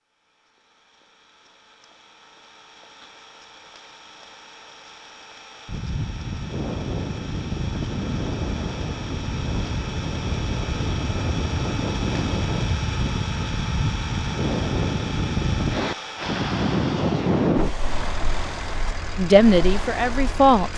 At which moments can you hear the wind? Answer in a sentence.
You can hear the wind from 5.7 to 20.7 s.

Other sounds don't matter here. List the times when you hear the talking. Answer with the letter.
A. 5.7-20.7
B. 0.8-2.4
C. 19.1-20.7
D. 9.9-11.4
C.